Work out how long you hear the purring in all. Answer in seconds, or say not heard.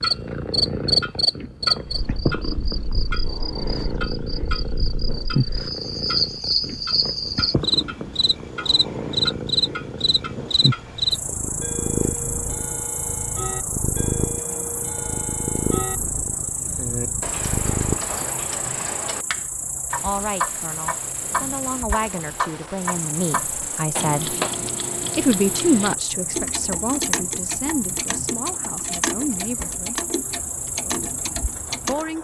18 s.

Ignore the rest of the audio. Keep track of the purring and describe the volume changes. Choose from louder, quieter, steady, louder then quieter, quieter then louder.
steady.